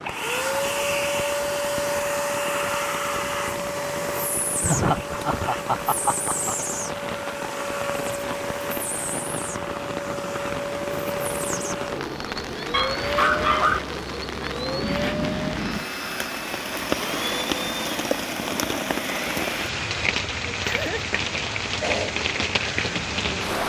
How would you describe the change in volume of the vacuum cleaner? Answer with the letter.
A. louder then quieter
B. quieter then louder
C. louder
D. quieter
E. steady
D.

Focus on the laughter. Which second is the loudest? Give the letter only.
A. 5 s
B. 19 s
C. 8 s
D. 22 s
A.